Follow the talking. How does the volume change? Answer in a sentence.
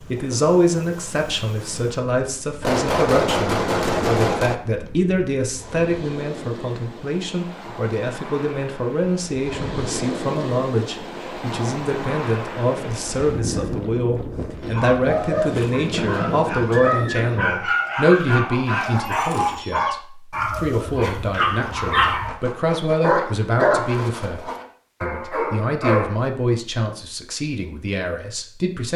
The loudness of the talking stays about the same.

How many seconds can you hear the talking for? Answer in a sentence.
You can hear the talking for 29 seconds altogether.